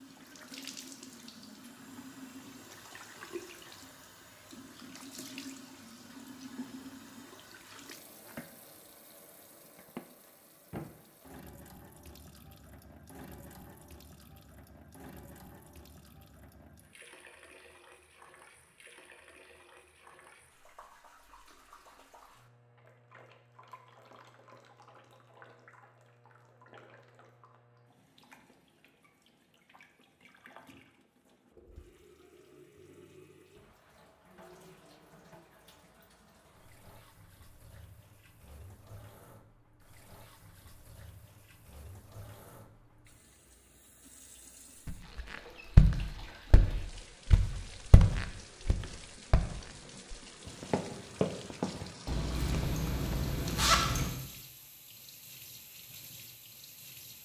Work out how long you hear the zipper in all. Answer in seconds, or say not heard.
2 s.